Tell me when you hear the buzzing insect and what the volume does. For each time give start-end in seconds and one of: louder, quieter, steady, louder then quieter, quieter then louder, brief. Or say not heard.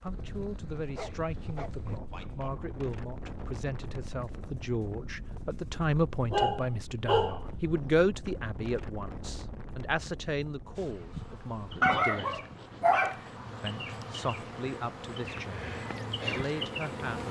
0.0-2.0 brief
10.8-17.2 quieter then louder.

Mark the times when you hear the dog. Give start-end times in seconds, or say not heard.
0.9-2.5, 6.3-7.9, 11.8-13.2.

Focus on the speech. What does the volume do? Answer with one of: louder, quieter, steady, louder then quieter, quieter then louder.
louder then quieter.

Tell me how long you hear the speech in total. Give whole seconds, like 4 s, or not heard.
16 s.